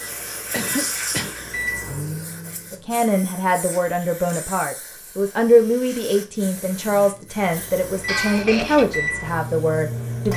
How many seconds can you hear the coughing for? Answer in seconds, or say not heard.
2 s.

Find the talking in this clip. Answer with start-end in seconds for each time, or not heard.
2.7-10.3.